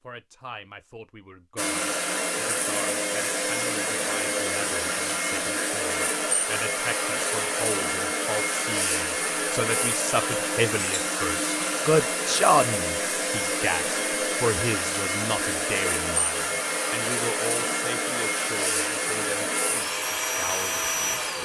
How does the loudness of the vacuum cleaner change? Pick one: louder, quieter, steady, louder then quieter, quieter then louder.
steady.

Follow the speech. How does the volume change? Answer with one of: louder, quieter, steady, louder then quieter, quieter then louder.
louder then quieter.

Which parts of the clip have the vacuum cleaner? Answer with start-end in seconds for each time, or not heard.
1.6-21.4.